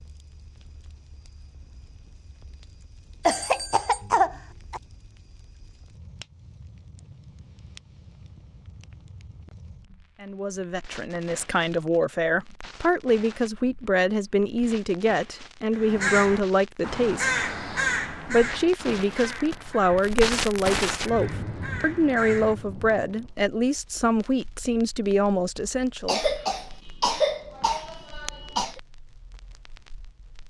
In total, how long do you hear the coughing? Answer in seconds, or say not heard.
4 s.